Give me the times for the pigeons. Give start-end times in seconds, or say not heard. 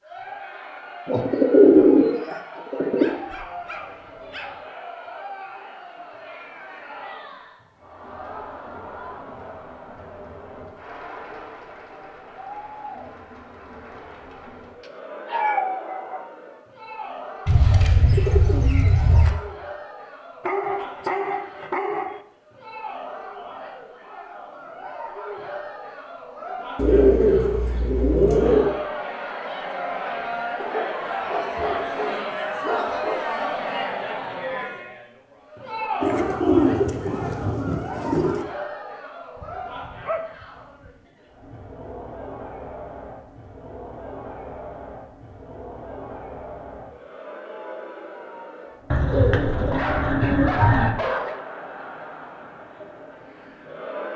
1.1-3.0, 17.4-19.4, 26.8-28.8, 36.0-38.5, 48.9-50.9.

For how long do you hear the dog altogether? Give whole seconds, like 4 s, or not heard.
10 s.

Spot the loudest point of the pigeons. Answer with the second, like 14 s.
2 s.